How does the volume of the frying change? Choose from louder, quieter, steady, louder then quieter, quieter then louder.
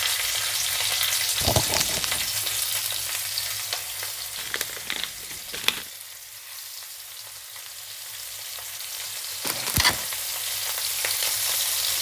quieter then louder.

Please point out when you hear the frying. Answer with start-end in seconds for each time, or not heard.
0.0-11.9.